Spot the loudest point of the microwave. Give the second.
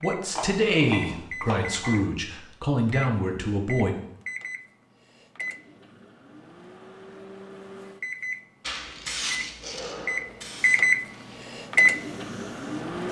11 s.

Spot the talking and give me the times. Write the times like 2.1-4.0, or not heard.
0.0-3.9.